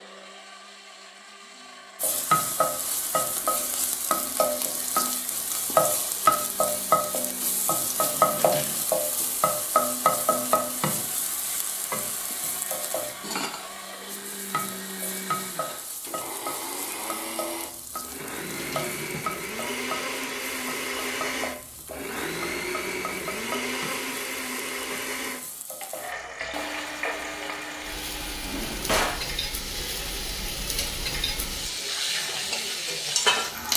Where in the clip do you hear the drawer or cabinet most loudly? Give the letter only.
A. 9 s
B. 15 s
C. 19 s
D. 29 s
D.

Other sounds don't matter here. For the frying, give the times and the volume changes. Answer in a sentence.
The frying can be heard from 2.0 to 33.7 s, getting quieter then louder.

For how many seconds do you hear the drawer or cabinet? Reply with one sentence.
You can hear the drawer or cabinet for 3 seconds altogether.